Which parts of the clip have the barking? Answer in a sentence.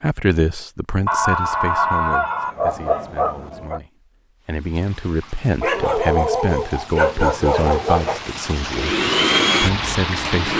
You can hear the barking from 1.1 to 3.8 s and from 5.6 to 8.2 s.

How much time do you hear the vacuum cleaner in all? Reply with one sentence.
The vacuum cleaner can be heard for 2 seconds in total.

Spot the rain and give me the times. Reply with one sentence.
You can hear the rain from 4.4 to 10.5 s.